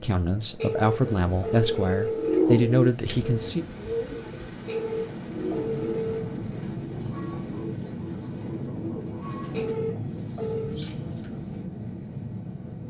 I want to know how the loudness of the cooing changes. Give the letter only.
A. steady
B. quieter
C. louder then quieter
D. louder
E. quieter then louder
B.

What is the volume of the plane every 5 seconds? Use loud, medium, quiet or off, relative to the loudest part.
medium, loud, loud.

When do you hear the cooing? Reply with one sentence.
You can hear the cooing from 1.0 to 11.6 s.